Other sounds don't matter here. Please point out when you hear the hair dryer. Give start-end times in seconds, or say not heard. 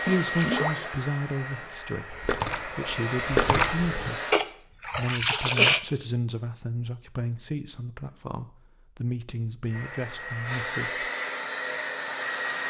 0.0-4.4, 9.7-12.6.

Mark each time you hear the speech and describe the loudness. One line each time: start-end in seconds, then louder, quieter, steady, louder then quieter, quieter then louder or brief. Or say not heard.
0.0-11.1 steady.